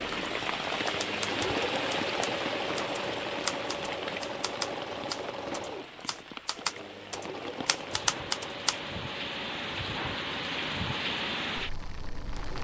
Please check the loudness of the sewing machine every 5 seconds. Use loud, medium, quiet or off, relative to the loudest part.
loud, medium, medium.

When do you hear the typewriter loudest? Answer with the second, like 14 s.
8 s.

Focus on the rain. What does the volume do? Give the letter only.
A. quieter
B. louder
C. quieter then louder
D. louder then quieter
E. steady
C.